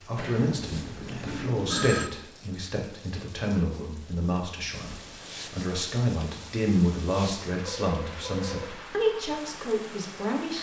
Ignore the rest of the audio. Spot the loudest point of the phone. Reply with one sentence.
The volume of the phone peaks at 2 seconds.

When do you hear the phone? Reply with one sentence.
You can hear the phone from 0.1 to 2.1 s and from 7.6 to 8.8 s.